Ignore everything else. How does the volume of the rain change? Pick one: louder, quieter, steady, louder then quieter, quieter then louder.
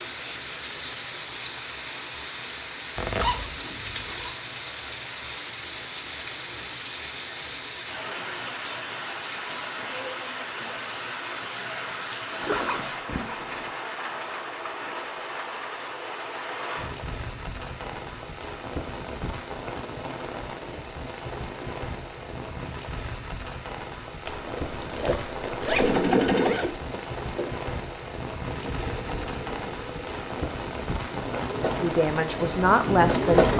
steady.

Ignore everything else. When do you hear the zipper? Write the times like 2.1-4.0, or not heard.
3.0-4.3, 12.4-13.8, 24.2-26.8.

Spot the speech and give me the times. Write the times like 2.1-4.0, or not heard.
31.8-33.5.